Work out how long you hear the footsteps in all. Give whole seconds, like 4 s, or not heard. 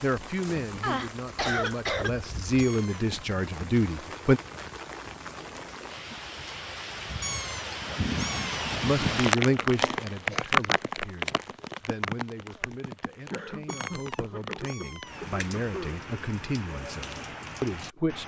not heard.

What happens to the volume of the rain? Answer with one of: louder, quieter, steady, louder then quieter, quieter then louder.
louder then quieter.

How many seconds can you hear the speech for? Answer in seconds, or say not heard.
14 s.